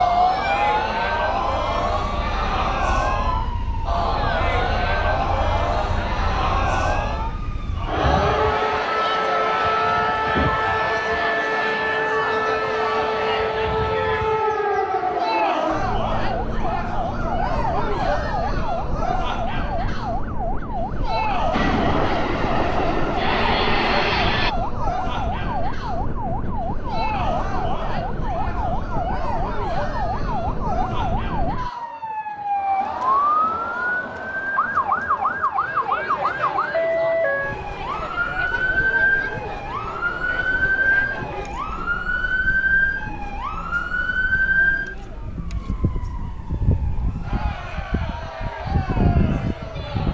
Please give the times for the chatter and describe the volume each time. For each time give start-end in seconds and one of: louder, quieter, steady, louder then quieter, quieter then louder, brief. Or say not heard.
0.0-50.0 quieter.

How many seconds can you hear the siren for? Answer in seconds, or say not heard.
50 s.